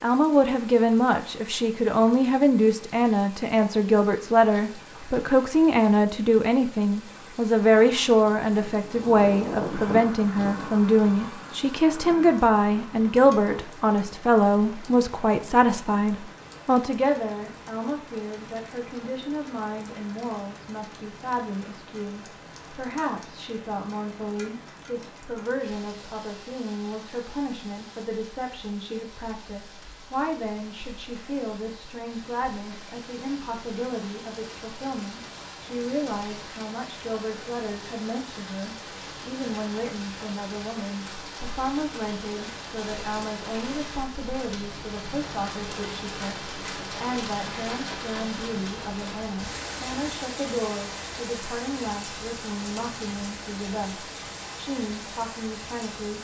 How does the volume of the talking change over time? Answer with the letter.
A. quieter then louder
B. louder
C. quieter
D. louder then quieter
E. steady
C.